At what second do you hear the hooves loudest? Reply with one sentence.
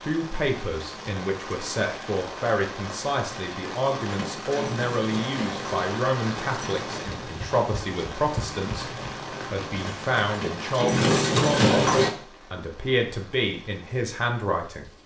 The volume of the hooves peaks at 12 seconds.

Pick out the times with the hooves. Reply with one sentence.
The hooves can be heard from 4.0 to 12.1 s.